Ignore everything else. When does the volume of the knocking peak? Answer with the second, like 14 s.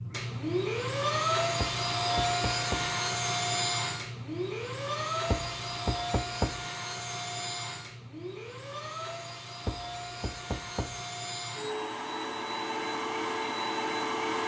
6 s.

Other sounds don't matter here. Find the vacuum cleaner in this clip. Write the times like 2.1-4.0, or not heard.
0.0-14.4.